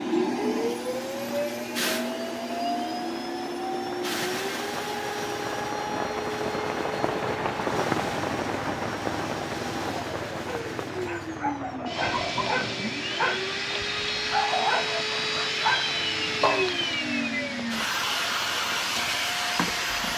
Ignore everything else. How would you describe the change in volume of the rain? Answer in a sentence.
The volume of the rain goes up, then down.